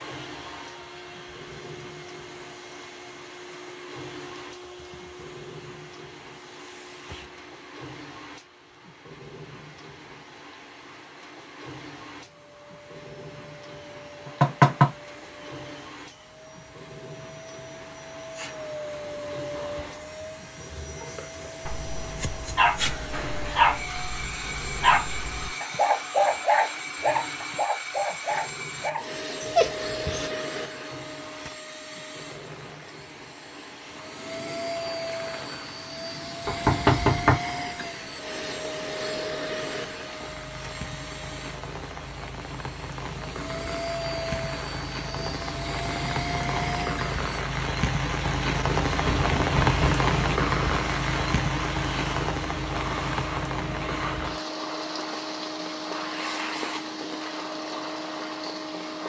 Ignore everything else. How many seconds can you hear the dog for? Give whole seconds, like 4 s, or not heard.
9 s.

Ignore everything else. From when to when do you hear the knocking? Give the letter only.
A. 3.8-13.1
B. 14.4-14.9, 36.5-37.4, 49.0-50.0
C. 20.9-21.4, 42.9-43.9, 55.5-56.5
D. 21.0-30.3
B.